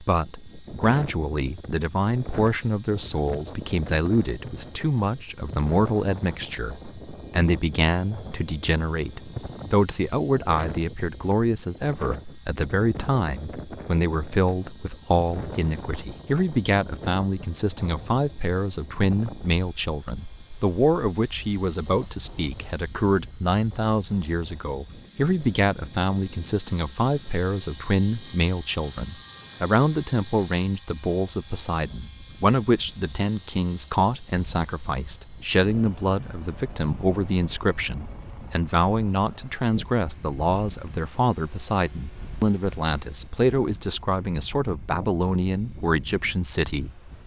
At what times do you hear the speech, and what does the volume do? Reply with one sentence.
You can hear the speech from 0.0 to 47.0 s, at a steady volume.